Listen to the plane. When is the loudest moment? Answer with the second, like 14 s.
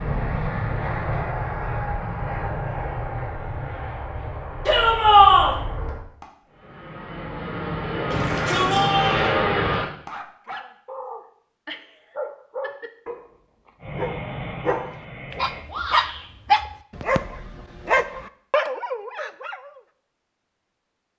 9 s.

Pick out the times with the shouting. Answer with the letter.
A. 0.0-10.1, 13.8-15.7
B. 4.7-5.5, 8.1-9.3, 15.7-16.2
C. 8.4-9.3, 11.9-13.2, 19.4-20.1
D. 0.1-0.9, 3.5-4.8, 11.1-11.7
B.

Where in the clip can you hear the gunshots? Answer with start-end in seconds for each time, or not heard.
not heard.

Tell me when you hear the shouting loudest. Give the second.
5 s.